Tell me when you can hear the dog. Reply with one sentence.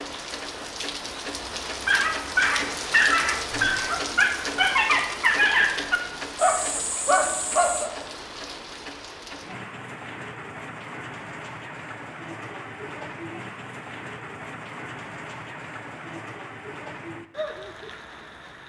You can hear the dog from 1.9 to 7.9 s.